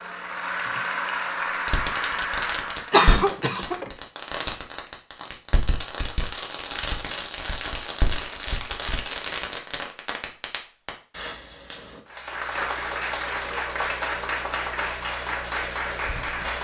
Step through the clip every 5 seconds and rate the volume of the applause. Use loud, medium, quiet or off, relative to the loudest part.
loud, off, loud, loud.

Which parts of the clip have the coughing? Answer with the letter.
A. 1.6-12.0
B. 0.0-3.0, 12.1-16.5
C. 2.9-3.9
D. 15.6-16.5
C.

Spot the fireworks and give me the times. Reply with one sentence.
You can hear the fireworks from 1.6 to 12.0 s.